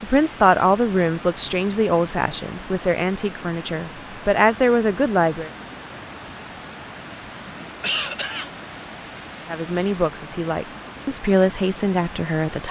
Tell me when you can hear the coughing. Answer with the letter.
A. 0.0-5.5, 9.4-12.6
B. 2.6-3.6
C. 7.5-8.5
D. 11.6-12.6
C.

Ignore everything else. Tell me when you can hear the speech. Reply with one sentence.
You can hear the speech from 0.0 to 5.5 s and from 9.4 to 12.6 s.